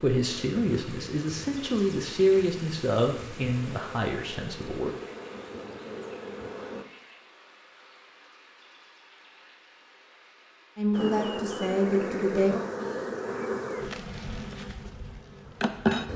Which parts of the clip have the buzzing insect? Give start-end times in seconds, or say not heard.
0.2-6.8, 10.9-16.1.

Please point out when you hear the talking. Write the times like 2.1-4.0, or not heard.
0.0-5.0, 10.8-12.6.